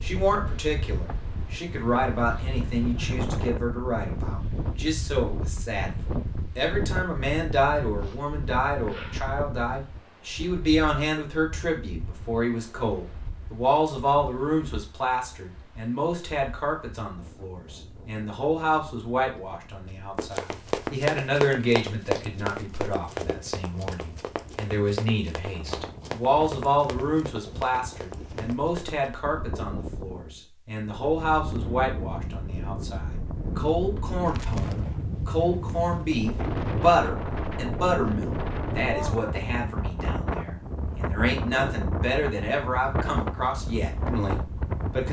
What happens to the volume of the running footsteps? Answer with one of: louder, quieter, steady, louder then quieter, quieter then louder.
quieter.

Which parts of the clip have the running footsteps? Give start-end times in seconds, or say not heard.
20.1-29.2.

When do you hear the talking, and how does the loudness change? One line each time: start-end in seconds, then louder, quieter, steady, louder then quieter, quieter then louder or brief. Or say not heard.
0.0-45.0 steady.